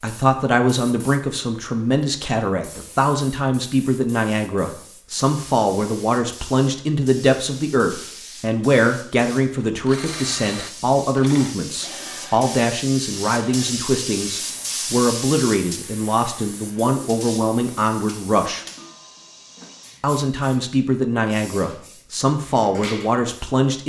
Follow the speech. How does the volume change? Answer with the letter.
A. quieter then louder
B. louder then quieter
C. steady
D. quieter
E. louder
C.